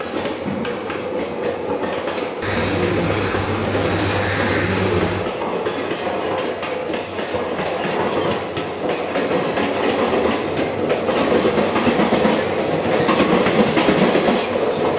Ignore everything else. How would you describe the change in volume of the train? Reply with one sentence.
The loudness of the train goes up.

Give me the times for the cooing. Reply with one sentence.
You can hear the cooing from 2.4 to 5.2 s.